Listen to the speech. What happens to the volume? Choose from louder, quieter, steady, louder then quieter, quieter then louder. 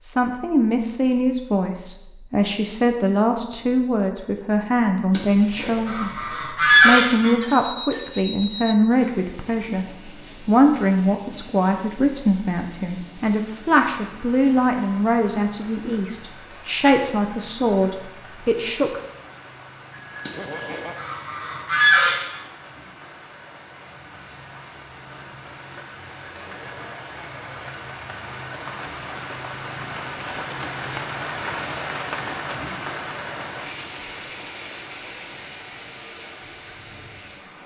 steady.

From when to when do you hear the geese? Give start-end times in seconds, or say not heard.
5.1-7.3, 20.2-22.4.